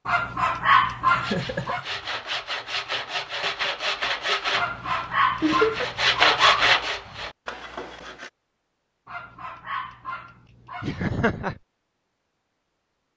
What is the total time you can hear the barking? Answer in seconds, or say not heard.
6 s.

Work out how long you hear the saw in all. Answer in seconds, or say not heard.
7 s.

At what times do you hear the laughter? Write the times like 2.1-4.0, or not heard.
1.1-1.9, 5.4-5.9, 10.8-11.6.